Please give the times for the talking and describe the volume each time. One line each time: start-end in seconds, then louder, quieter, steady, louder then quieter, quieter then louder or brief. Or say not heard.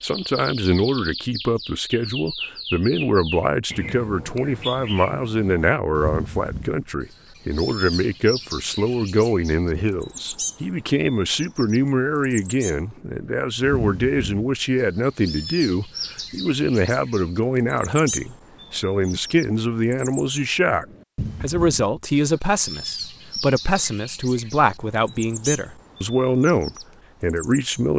0.0-27.9 steady.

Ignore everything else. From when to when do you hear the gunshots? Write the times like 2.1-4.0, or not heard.
not heard.